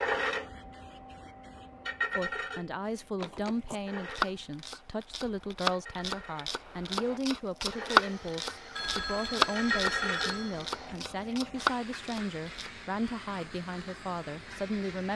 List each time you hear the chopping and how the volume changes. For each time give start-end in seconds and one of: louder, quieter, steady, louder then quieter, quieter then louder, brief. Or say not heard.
3.3-12.7 louder then quieter.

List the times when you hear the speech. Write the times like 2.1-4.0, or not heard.
2.1-15.1.